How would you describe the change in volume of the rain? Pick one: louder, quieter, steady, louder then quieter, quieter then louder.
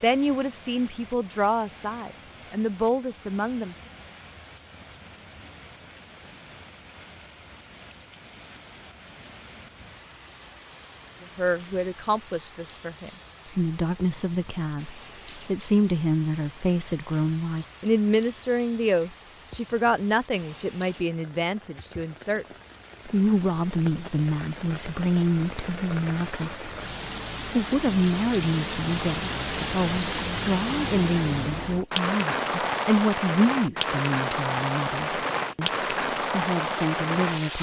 louder.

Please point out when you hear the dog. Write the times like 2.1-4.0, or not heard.
not heard.